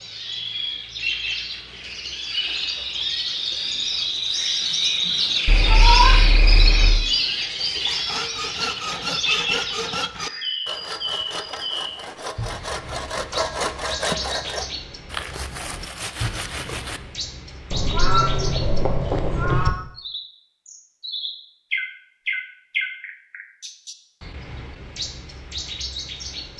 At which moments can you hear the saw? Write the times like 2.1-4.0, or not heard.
7.8-17.0.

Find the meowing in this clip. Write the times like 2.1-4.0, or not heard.
5.5-7.0, 17.7-19.7.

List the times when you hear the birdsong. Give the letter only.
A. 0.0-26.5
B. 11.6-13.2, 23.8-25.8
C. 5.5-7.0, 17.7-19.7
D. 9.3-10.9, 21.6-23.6
A.